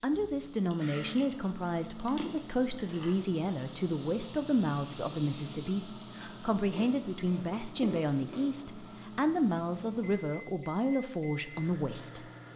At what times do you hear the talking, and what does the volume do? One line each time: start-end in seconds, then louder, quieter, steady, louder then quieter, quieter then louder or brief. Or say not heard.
0.0-12.2 steady.